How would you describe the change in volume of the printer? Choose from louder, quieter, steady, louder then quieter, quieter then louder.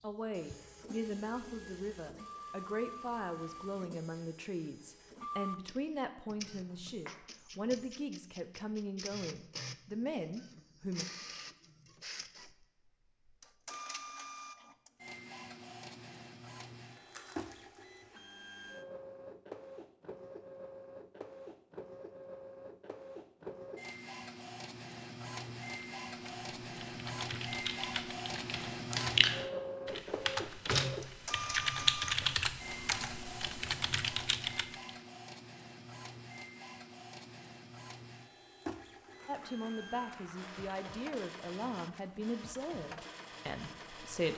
louder then quieter.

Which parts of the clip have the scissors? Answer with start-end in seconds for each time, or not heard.
not heard.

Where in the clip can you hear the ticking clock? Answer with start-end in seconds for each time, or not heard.
not heard.